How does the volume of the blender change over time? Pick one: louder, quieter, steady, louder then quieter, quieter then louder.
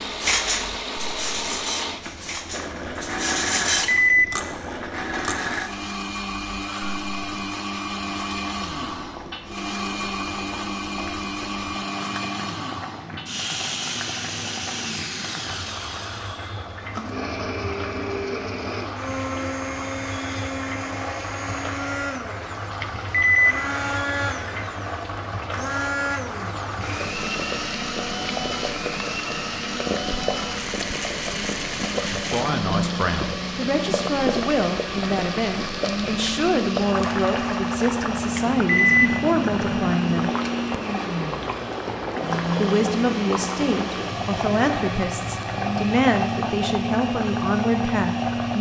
steady.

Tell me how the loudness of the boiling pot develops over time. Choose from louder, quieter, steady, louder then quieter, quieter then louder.
louder.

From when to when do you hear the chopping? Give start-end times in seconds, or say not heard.
not heard.